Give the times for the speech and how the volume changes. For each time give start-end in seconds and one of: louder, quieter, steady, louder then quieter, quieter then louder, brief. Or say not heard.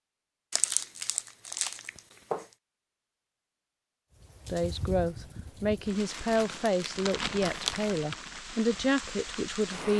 4.5-9.9 steady.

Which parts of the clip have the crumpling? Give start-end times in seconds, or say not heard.
0.5-2.5, 6.0-7.9.